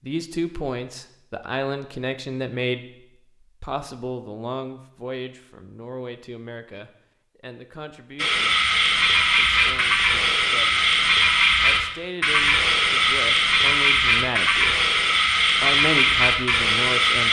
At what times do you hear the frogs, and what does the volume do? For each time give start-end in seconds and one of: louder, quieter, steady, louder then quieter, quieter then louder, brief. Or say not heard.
8.2-17.2 steady.